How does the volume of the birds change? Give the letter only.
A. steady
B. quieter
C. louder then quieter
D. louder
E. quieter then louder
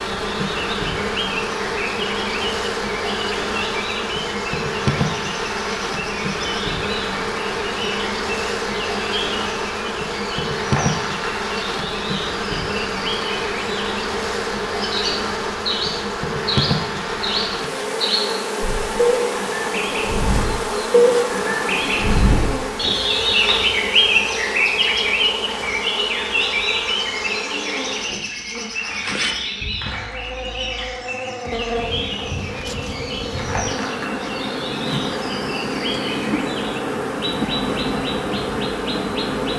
C.